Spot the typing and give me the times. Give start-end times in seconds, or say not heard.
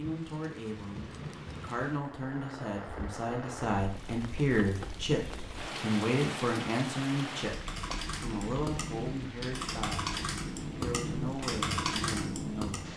7.4-12.9.